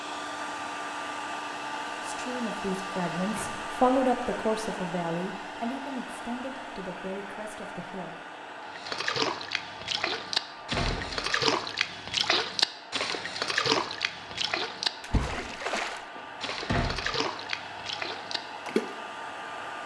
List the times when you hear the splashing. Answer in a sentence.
The splashing can be heard from 8.7 to 18.9 s.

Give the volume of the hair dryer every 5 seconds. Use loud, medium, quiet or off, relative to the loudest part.
loud, medium, medium, medium.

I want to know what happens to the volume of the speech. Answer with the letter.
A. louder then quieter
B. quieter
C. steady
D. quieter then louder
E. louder
A.